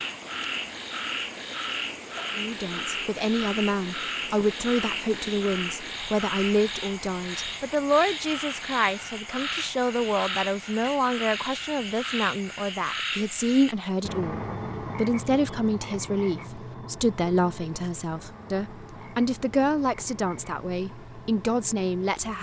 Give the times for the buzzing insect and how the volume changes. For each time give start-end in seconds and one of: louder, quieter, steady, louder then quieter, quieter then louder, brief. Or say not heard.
not heard.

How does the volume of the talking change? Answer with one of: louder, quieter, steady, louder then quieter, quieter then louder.
steady.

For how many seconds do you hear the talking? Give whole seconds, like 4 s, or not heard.
20 s.